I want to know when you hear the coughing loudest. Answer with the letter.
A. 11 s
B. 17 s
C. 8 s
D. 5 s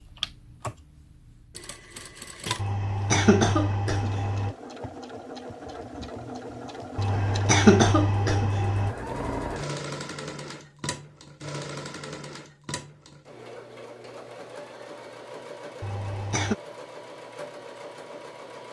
C.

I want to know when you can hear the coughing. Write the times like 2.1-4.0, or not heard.
2.5-4.5, 7.0-8.9, 15.8-16.6.